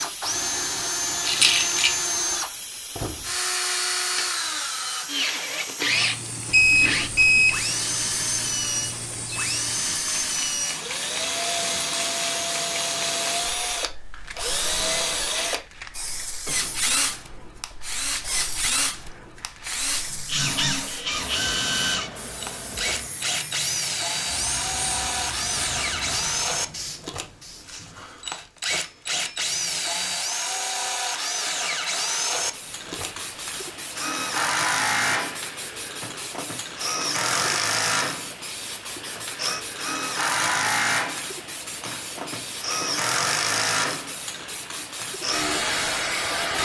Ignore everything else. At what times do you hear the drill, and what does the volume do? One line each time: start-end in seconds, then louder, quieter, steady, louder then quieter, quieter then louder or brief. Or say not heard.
0.0-46.6 steady.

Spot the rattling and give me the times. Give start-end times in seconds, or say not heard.
1.2-1.9.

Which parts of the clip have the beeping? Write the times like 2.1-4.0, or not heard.
6.5-7.5.